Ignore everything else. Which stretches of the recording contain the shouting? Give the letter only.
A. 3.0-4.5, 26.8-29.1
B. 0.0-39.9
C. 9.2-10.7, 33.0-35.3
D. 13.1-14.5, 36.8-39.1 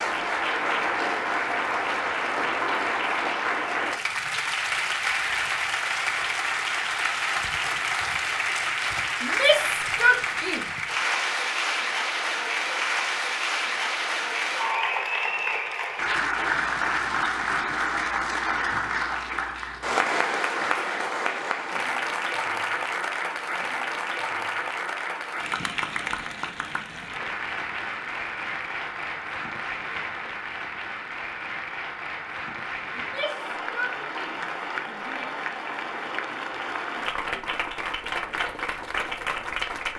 C.